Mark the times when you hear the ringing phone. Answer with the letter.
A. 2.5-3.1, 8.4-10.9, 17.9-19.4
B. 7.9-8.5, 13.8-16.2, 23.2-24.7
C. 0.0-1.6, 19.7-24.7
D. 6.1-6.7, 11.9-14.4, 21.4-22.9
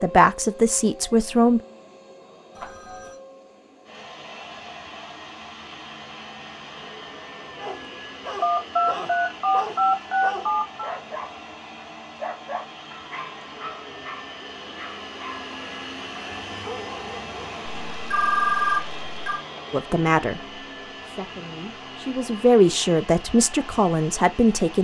A.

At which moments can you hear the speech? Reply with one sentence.
You can hear the speech from 0.0 to 1.6 s and from 19.7 to 24.7 s.